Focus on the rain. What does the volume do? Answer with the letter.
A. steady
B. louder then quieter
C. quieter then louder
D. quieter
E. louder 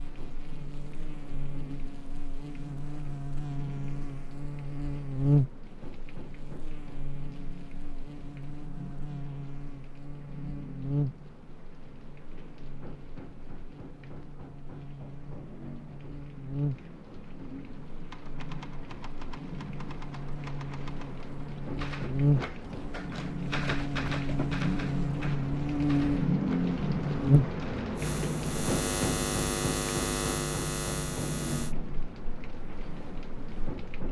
E.